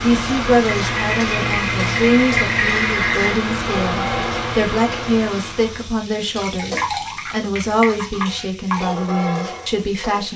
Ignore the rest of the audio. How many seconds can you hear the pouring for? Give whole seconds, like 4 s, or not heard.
5 s.